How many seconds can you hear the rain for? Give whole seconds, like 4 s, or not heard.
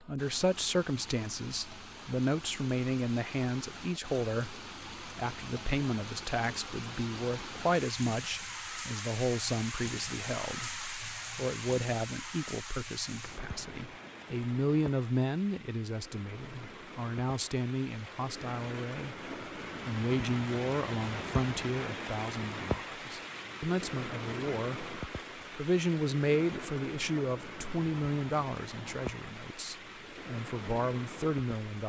32 s.